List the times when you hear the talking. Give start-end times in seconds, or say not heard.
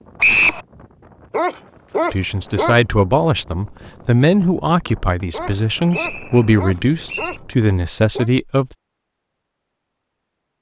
2.1-8.7.